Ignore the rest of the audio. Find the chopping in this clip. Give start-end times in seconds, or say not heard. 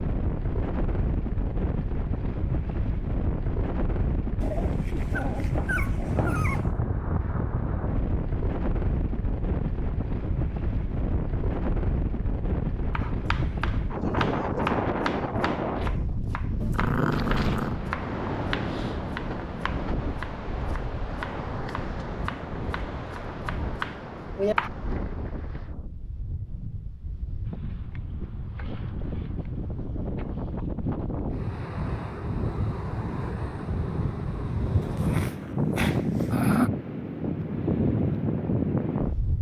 12.9-24.7.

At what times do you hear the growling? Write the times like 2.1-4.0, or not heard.
4.4-6.7, 16.6-17.8, 34.8-36.7.